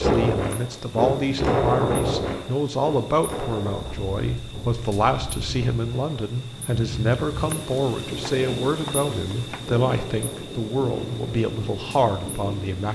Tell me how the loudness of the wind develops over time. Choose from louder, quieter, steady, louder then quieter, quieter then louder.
quieter.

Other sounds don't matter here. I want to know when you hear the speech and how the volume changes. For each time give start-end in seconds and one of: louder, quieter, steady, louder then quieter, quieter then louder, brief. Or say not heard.
0.0-12.9 steady.